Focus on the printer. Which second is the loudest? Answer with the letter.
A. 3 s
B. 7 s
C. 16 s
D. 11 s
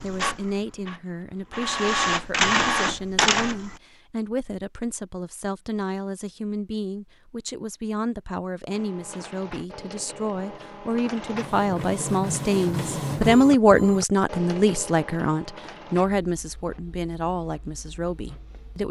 A.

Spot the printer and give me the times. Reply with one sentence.
You can hear the printer from 0.0 to 3.8 s and from 8.7 to 18.8 s.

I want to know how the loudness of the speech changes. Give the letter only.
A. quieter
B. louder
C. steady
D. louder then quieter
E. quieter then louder
D.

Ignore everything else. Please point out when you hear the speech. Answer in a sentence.
You can hear the speech from 0.0 to 18.8 s.